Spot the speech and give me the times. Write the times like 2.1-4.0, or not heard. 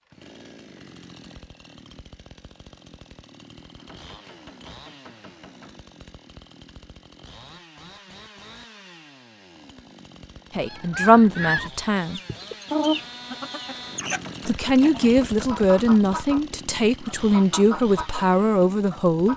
10.6-12.2, 14.4-19.3.